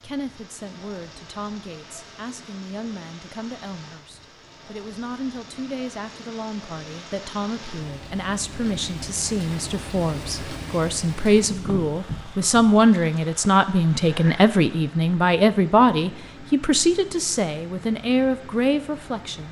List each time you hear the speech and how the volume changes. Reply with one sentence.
The speech can be heard from 0.0 to 19.4 s, getting louder.